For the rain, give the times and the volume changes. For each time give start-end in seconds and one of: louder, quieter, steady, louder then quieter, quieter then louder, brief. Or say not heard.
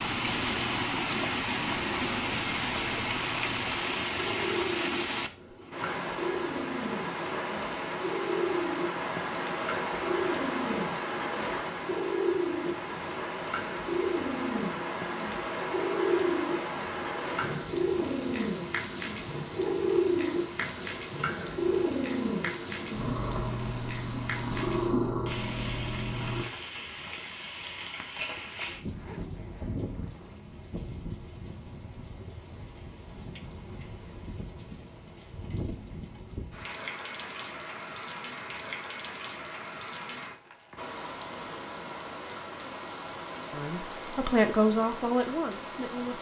0.0-46.1 quieter.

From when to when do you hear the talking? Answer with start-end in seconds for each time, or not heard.
43.5-46.1.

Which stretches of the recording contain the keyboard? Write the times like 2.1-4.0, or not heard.
not heard.